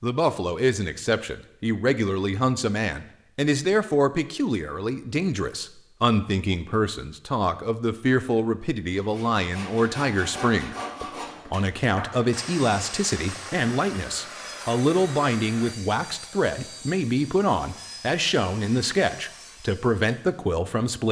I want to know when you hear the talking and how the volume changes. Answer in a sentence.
The talking can be heard from 0.0 to 21.0 s, at a steady volume.